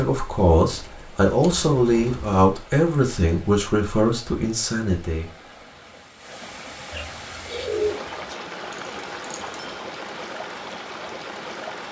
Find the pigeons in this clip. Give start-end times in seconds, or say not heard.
0.7-2.5, 6.9-8.3.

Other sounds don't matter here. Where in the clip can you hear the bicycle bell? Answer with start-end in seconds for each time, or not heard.
8.8-9.8.